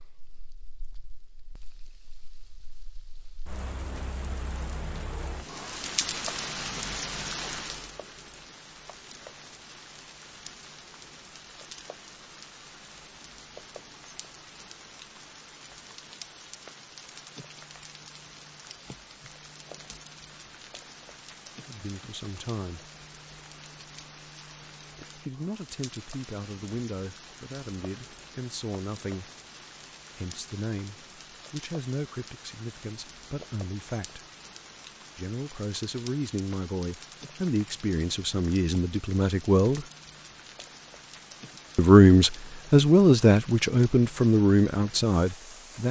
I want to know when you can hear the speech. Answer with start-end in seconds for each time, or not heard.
21.6-22.9, 25.1-29.3, 30.1-34.2, 35.1-39.9, 41.8-45.8.